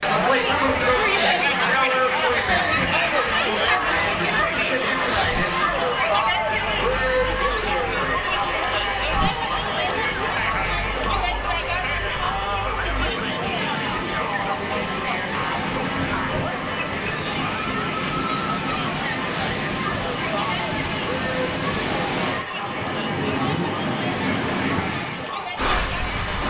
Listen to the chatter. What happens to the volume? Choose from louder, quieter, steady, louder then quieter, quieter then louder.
quieter.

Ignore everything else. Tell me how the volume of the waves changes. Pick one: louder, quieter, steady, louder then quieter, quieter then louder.
louder.